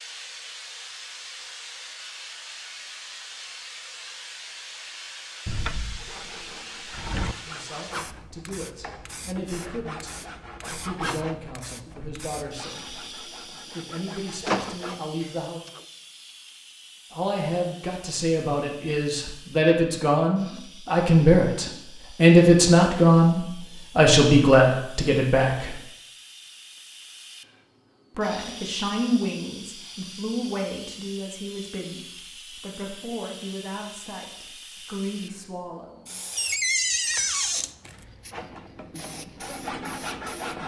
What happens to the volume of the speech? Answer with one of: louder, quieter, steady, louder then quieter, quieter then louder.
louder then quieter.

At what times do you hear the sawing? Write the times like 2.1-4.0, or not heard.
6.0-15.1, 38.3-40.6.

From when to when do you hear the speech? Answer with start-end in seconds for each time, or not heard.
7.5-15.6, 17.1-25.8, 28.1-36.2.